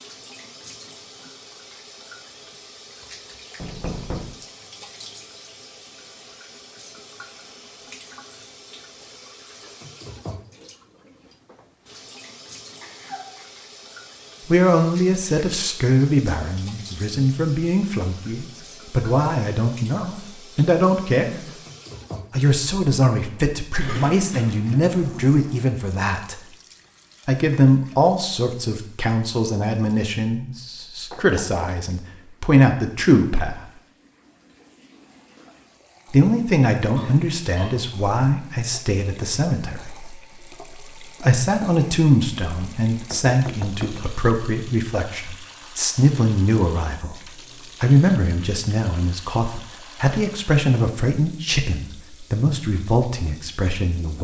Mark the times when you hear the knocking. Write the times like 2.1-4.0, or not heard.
3.5-4.3, 31.1-31.6, 43.1-44.1.